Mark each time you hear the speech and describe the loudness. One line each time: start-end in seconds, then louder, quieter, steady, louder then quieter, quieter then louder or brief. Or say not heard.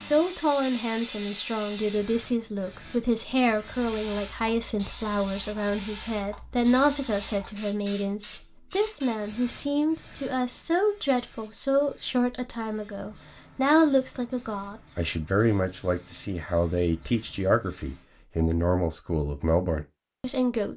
0.1-20.7 steady.